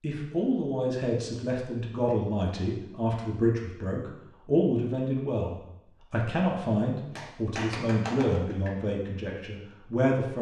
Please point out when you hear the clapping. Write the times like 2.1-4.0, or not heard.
7.2-8.8.